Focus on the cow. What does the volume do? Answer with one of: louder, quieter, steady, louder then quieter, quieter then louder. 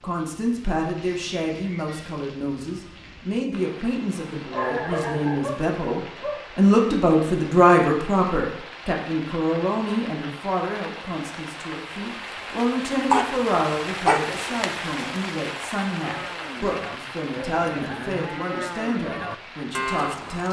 louder.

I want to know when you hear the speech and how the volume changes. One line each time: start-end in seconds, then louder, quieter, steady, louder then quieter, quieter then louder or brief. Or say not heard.
0.0-20.4 louder then quieter.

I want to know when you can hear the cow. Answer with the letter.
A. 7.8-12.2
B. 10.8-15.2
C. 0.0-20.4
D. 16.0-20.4
D.